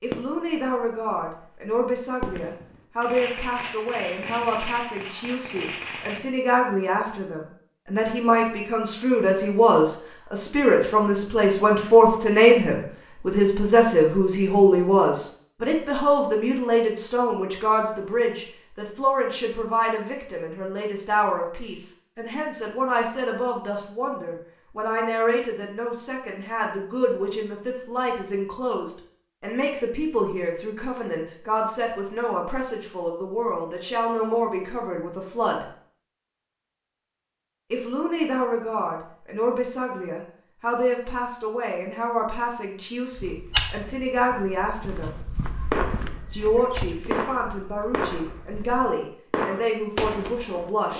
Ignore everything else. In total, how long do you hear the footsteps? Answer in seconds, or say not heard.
6 s.